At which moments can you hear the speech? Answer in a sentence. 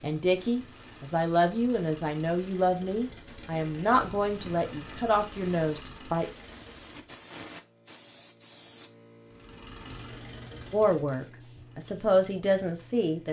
You can hear the speech from 0.0 to 6.3 s and from 10.7 to 13.2 s.